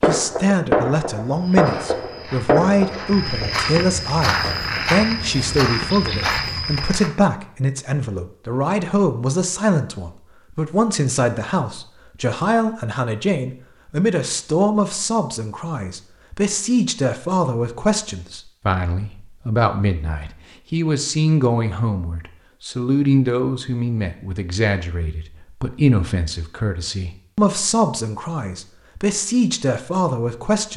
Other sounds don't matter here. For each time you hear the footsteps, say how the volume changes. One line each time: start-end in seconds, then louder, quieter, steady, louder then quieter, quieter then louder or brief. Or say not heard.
1.2-7.1 louder.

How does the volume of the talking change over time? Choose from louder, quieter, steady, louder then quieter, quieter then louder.
steady.